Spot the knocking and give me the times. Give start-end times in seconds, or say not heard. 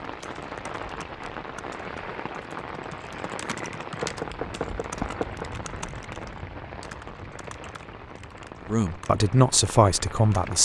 4.0-5.5.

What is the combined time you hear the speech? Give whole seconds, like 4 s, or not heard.
2 s.